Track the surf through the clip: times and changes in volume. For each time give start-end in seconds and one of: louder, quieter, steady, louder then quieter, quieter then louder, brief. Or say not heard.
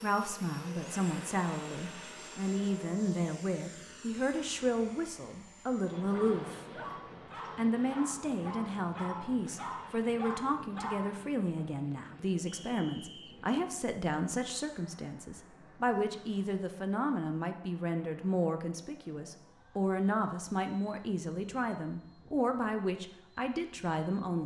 not heard.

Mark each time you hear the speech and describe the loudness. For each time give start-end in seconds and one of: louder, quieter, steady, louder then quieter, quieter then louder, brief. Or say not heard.
0.0-6.8 steady
7.5-24.4 steady.